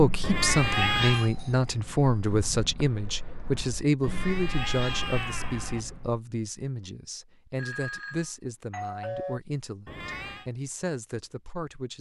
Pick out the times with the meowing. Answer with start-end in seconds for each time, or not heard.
0.2-1.3, 4.0-5.8, 9.8-10.5.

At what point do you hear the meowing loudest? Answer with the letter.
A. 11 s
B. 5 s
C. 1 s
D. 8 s
C.